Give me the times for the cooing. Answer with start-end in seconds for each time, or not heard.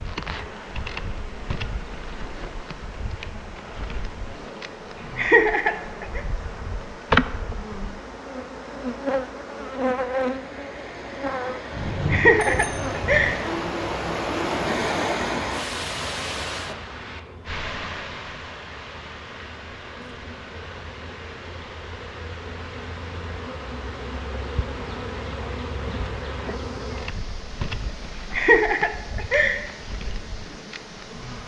not heard.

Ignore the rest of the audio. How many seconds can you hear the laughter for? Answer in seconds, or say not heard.
4 s.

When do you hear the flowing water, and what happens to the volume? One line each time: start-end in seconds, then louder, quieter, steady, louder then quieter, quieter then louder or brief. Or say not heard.
0.0-31.4 louder then quieter.